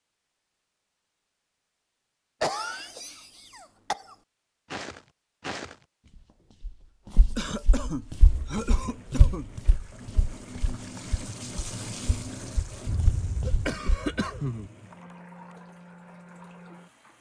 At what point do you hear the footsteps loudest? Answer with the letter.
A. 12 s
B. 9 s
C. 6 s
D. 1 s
B.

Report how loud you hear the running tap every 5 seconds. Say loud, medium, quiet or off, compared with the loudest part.
off, medium, loud, medium.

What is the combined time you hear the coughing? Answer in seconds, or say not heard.
6 s.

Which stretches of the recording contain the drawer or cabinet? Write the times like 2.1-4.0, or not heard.
not heard.